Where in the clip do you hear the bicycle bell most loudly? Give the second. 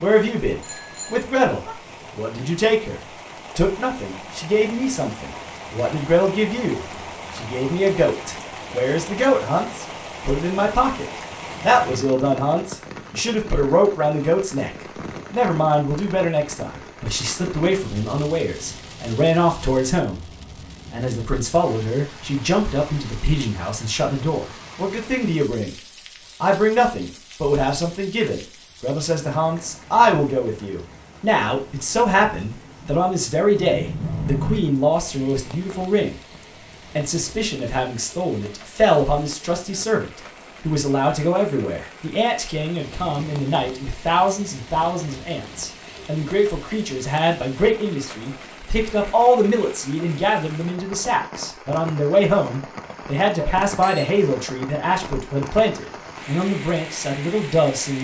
34 s.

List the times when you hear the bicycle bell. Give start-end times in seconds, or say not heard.
0.6-1.8, 33.6-34.6, 53.6-54.0.